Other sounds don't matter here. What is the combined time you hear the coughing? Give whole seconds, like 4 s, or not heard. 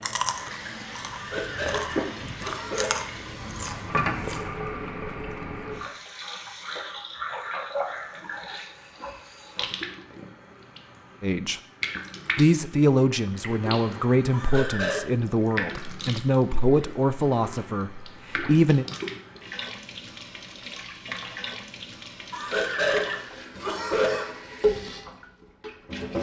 5 s.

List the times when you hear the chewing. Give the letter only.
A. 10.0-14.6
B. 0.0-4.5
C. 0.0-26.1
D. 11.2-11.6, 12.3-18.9
B.